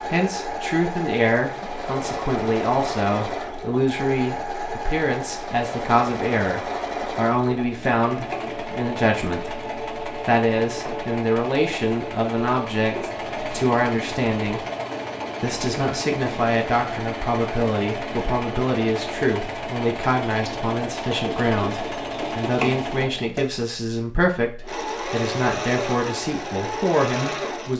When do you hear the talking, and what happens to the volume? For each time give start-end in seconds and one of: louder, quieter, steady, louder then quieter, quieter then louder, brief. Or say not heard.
0.1-14.7 steady
15.4-27.7 steady.